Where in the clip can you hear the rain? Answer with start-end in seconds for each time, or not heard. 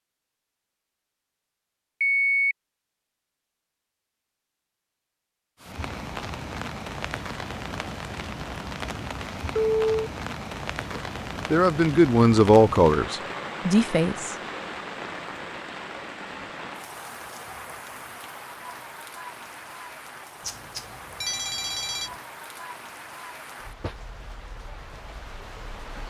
5.6-26.0.